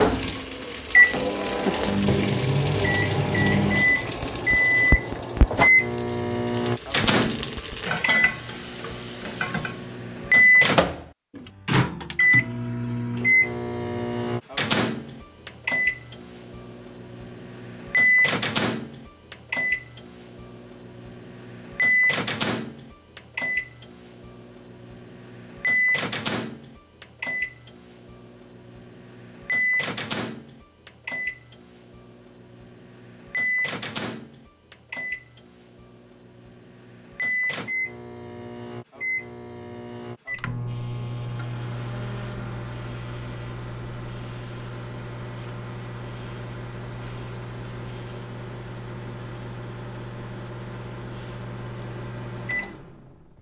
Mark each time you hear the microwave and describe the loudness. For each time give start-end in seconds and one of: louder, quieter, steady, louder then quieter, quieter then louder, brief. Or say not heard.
0.0-53.3 quieter.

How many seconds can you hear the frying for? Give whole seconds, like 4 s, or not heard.
10 s.